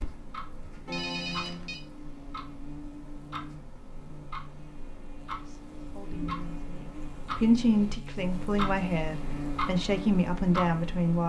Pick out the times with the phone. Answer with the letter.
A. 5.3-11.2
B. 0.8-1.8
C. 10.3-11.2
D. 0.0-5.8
B.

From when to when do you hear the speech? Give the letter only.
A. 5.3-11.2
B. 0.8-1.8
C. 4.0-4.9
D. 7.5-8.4
A.